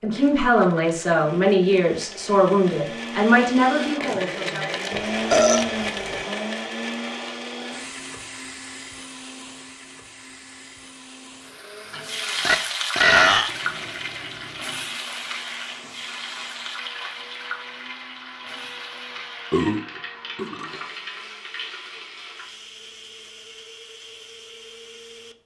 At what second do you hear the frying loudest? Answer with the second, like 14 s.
13 s.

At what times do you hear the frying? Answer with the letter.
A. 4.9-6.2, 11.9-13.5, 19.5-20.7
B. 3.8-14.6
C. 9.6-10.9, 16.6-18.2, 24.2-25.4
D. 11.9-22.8
D.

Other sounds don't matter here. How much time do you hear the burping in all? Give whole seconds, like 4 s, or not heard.
4 s.